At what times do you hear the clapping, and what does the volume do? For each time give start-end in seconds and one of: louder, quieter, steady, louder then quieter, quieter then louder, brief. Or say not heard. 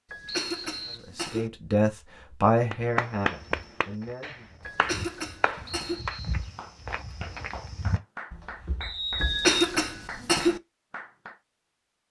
2.7-11.4 quieter.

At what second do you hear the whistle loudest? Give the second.
9 s.